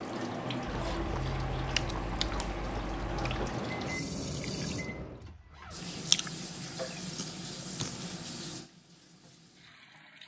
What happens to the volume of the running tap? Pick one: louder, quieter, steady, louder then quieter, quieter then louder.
quieter.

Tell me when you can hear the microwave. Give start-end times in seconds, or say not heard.
3.5-5.2.